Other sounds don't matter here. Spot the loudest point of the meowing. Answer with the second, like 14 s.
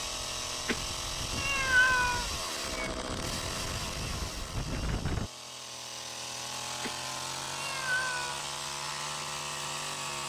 2 s.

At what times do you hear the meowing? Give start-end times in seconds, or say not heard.
0.7-2.9, 6.8-8.4.